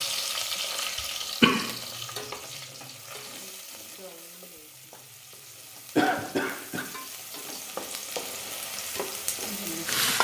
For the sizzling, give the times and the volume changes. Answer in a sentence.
The sizzling can be heard from 0.0 to 10.2 s, getting quieter then louder.